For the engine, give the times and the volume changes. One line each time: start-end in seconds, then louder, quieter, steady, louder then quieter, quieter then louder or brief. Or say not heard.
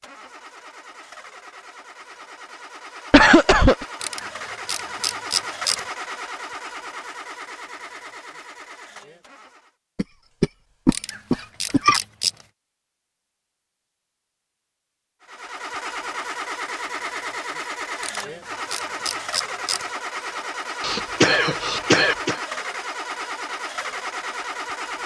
0.0-9.7 louder then quieter
15.2-25.0 steady.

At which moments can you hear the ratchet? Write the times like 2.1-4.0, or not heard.
4.0-5.8, 10.9-12.3, 18.0-19.9.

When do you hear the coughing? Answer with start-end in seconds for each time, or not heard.
3.1-3.9, 9.9-12.0, 20.8-22.4.